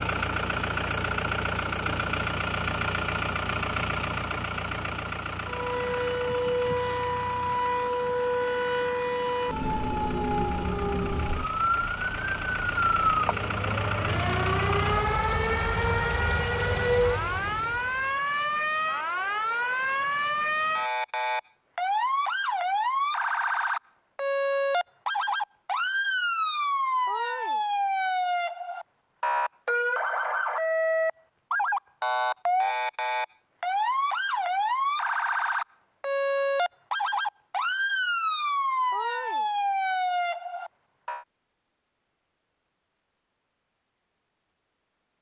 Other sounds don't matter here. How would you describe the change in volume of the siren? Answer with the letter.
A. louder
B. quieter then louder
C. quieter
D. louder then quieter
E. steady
E.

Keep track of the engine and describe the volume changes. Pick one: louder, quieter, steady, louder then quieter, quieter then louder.
quieter then louder.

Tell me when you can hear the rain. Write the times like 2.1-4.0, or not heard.
not heard.